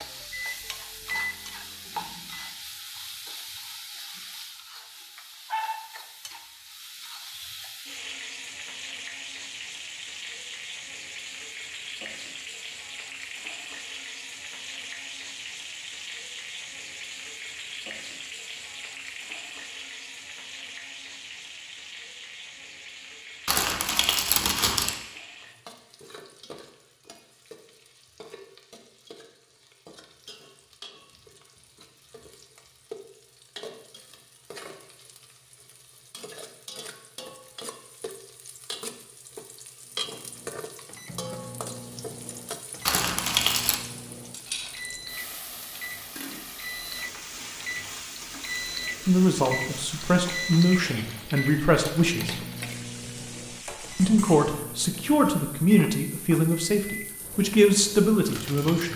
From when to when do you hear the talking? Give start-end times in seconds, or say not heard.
49.0-52.4, 54.0-58.9.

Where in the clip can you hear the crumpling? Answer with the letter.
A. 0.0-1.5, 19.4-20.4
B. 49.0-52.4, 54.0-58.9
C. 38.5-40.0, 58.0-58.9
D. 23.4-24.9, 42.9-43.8
D.